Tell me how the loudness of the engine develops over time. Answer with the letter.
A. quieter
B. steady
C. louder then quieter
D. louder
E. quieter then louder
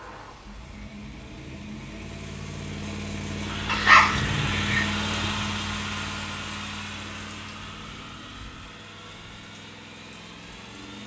C.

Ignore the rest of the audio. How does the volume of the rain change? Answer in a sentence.
The volume of the rain goes up, then down.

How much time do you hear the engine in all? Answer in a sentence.
You can hear the engine for 11 seconds altogether.